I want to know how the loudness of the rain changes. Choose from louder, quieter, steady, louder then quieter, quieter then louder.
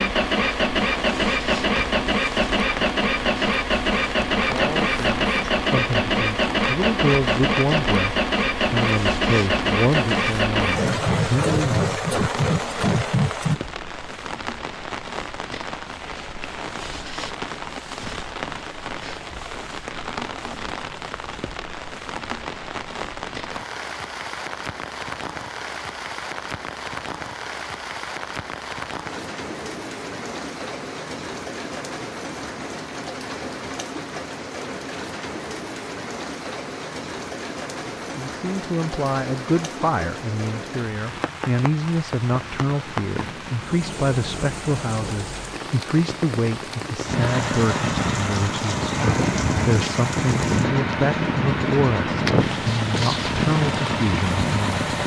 steady.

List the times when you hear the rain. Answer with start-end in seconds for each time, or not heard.
0.1-55.0.